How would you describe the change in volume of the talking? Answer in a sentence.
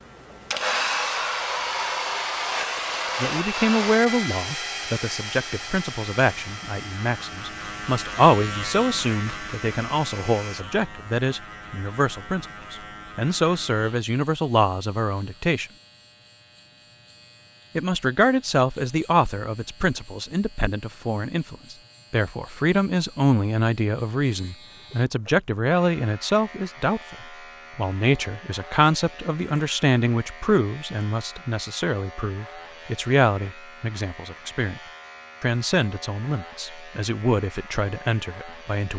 The volume of the talking stays about the same.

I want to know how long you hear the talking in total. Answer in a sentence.
You can hear the talking for 33 seconds altogether.